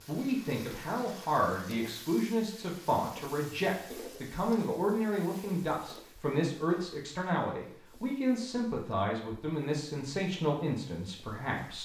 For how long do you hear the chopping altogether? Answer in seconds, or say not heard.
not heard.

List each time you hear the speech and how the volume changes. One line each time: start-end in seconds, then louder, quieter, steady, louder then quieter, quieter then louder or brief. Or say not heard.
0.1-11.8 steady.